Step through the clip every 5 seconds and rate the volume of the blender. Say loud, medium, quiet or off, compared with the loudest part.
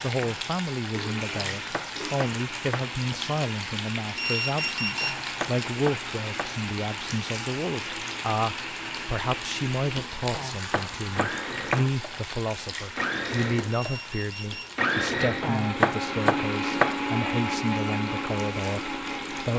medium, medium, loud, loud.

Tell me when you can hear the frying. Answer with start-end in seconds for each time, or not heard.
0.0-19.5.